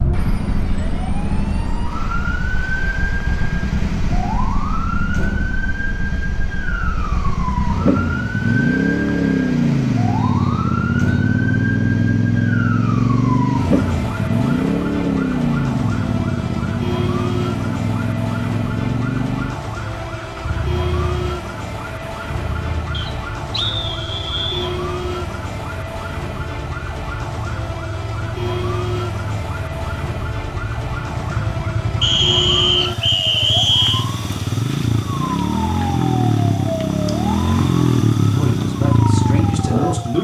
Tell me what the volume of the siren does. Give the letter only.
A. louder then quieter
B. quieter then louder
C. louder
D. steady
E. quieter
D.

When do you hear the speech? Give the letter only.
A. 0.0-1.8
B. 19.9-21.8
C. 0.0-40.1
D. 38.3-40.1
D.